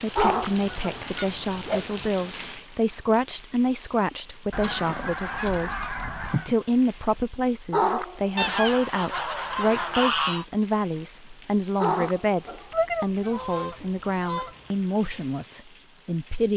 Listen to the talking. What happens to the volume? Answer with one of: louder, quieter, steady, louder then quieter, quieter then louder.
steady.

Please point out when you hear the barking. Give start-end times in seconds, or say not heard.
0.1-1.1, 7.7-8.7, 11.8-12.8.